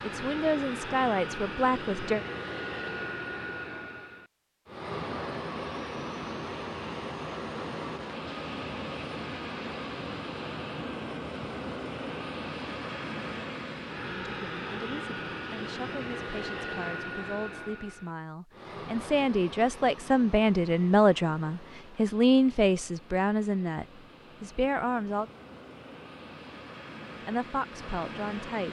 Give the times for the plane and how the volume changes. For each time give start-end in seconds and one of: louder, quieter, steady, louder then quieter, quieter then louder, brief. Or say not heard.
0.0-28.6 quieter.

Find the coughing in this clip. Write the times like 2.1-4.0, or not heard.
not heard.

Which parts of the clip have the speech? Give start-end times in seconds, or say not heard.
0.0-2.2, 14.2-25.3, 27.2-28.6.